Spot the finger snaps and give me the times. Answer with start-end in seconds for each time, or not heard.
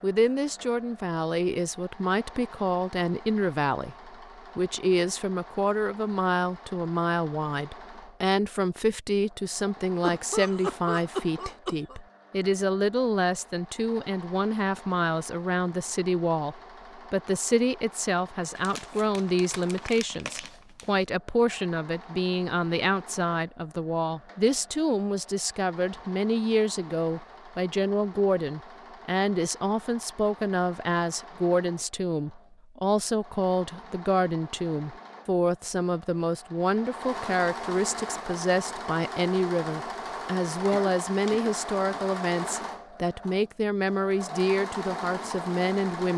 not heard.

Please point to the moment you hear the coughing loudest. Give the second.
11 s.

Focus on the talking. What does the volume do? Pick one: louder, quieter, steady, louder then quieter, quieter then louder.
steady.